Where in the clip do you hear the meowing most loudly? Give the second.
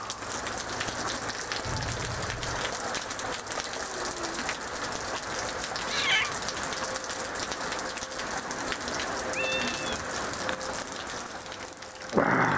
6 s.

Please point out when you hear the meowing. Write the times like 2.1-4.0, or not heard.
1.6-2.7, 5.3-6.5, 9.3-10.6.